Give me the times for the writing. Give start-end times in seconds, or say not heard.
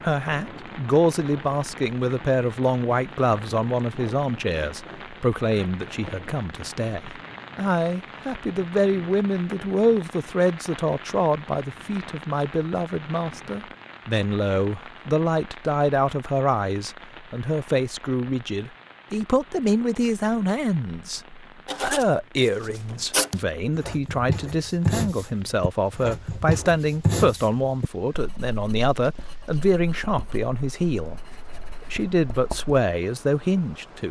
21.6-32.8.